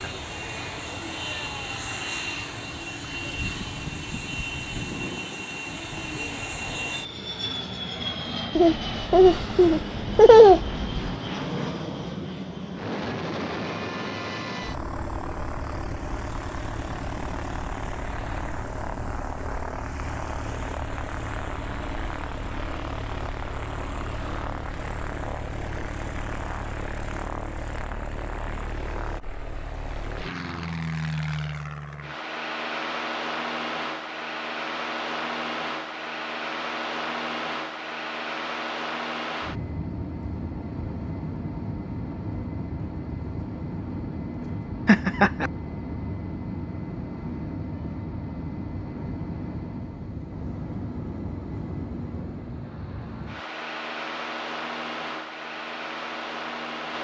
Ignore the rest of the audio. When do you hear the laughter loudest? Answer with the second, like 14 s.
10 s.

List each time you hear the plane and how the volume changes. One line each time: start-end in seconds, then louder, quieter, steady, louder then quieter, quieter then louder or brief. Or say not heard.
0.0-56.9 steady.